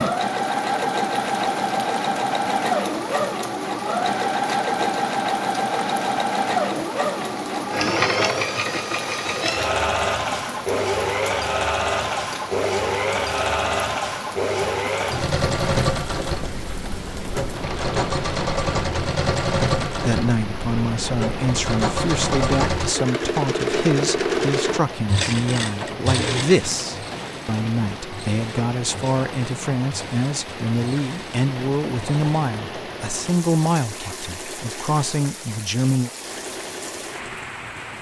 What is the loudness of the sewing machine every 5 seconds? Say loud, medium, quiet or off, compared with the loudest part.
loud, loud, loud, loud, loud, medium, quiet, quiet.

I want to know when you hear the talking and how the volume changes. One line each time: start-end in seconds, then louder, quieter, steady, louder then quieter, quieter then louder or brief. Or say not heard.
20.0-36.1 steady.